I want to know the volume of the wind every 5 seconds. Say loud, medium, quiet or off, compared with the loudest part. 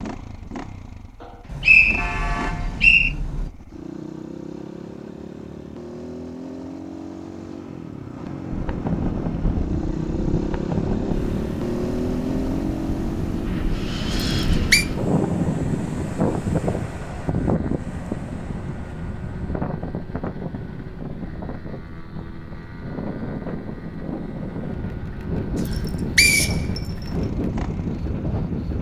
off, loud, loud, loud, medium, loud.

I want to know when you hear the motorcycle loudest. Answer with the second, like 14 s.
12 s.